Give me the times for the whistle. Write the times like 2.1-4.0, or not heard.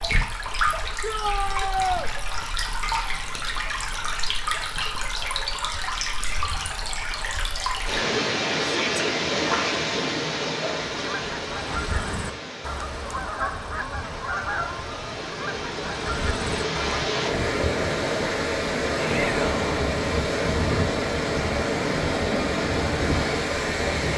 not heard.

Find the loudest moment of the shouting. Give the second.
2 s.